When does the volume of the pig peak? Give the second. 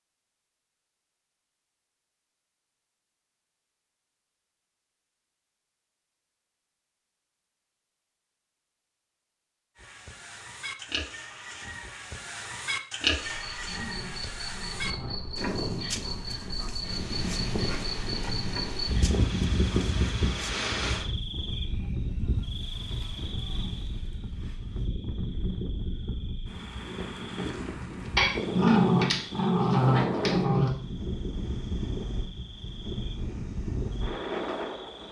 13 s.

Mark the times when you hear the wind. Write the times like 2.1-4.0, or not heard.
14.7-35.0.